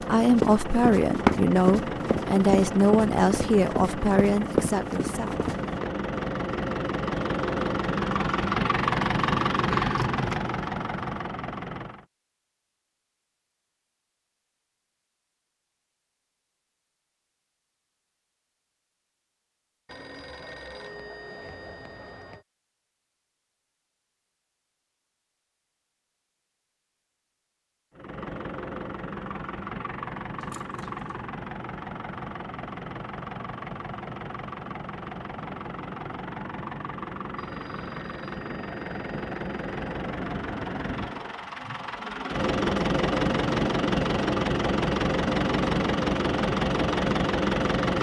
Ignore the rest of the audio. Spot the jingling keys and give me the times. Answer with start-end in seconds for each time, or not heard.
9.7-10.5, 30.4-31.2.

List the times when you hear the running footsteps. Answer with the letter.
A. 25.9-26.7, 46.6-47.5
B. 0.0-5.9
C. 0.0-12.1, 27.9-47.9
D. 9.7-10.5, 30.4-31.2
B.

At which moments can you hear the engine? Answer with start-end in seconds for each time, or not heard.
0.0-12.1, 27.9-47.9.